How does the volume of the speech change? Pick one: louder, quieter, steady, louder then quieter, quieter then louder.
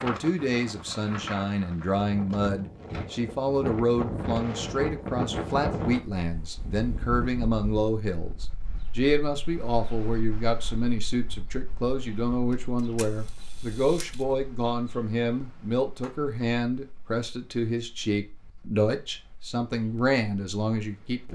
steady.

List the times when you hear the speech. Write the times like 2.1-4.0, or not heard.
0.0-21.3.